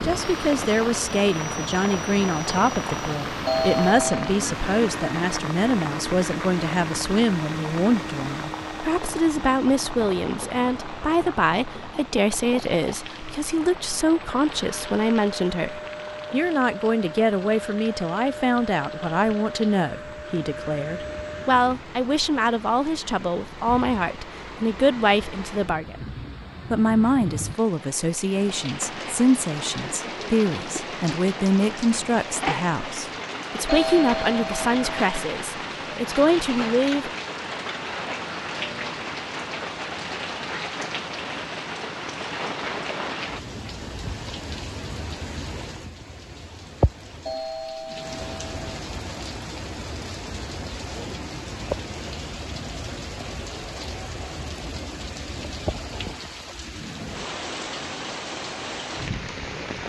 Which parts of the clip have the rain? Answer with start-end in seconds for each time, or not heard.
0.0-59.8.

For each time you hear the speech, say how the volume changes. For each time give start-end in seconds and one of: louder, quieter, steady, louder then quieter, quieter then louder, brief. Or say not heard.
0.0-26.1 steady
26.7-37.1 steady.